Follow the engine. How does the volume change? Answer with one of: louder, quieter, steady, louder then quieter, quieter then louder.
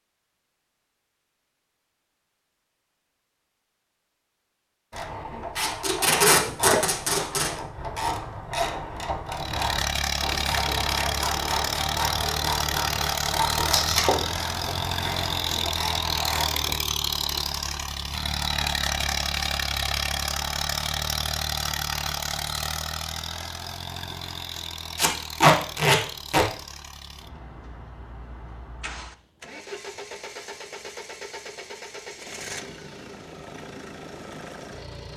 quieter.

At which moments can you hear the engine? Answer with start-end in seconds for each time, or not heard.
9.2-35.1.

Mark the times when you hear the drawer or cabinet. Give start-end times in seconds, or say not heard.
not heard.